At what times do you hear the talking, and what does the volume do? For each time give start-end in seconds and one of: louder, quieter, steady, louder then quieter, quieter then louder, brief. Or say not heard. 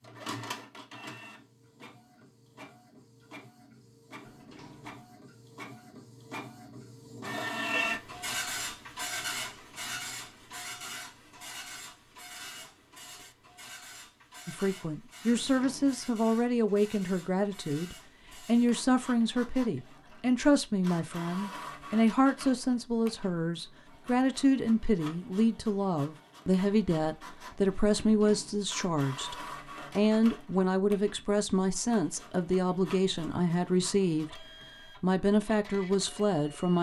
14.4-36.7 steady.